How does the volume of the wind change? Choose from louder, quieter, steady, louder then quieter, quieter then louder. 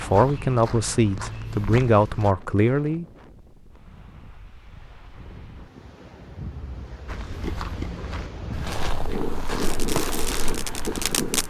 louder.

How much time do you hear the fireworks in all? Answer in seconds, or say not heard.
2 s.